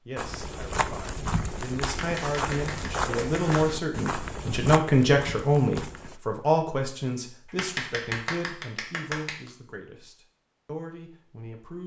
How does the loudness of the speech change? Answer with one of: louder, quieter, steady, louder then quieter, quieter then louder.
louder then quieter.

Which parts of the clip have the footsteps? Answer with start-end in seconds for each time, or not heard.
0.1-6.2.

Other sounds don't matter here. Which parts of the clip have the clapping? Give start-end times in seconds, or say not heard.
1.9-3.7, 7.5-9.5.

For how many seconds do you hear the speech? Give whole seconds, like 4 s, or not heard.
12 s.